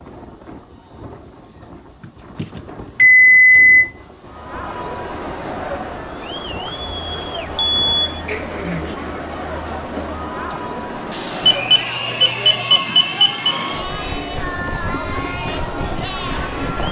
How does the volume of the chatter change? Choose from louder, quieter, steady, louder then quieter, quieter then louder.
steady.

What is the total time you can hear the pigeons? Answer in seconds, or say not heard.
not heard.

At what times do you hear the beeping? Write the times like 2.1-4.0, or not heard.
2.4-3.9, 7.5-8.2, 11.4-13.5.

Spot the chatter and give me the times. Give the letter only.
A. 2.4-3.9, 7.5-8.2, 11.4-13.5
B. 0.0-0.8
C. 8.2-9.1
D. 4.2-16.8
D.